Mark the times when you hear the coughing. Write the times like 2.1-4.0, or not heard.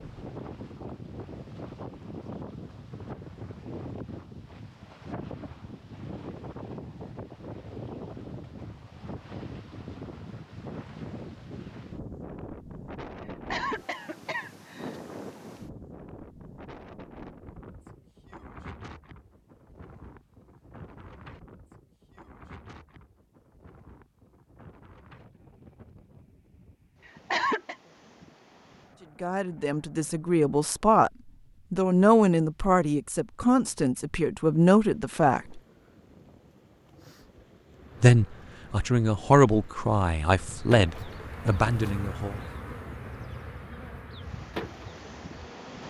13.2-15.0, 27.1-27.8.